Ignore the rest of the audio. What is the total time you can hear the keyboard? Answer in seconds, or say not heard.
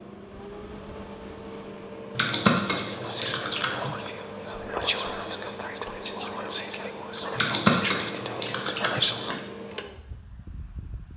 4 s.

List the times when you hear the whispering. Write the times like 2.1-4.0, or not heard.
2.6-9.4.